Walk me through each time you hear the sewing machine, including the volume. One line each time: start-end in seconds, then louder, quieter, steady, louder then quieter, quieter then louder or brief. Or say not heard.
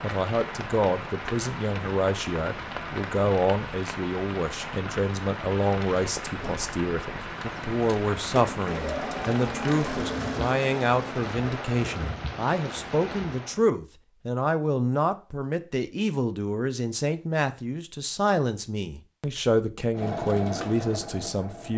6.4-12.2 louder then quieter
19.9-21.7 brief.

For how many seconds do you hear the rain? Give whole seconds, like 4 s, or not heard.
14 s.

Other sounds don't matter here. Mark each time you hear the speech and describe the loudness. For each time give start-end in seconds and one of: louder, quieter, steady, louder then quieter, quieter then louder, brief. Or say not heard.
0.0-21.7 steady.